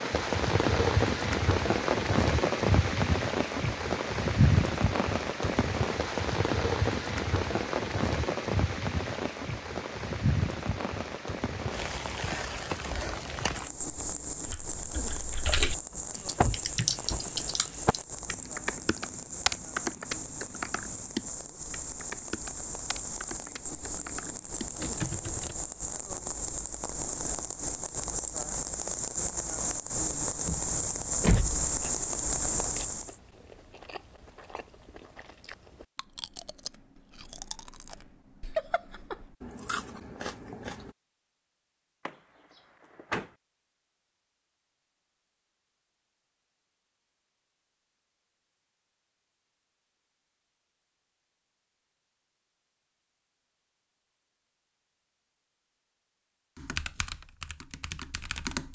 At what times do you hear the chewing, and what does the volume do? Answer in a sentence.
The chewing can be heard from 31.3 to 41.0 s, getting louder.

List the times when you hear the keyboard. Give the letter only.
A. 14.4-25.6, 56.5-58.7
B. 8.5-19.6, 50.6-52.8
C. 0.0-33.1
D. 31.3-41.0
A.